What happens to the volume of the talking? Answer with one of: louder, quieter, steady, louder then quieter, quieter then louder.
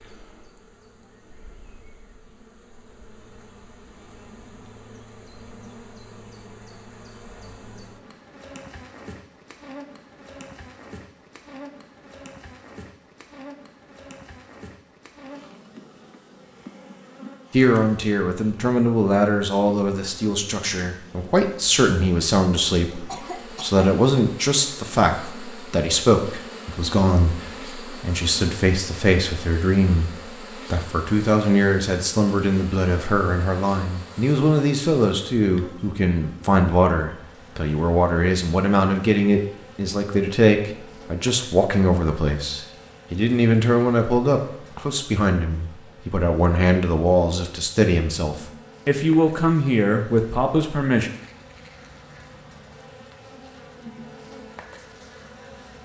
steady.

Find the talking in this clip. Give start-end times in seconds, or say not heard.
17.5-51.1.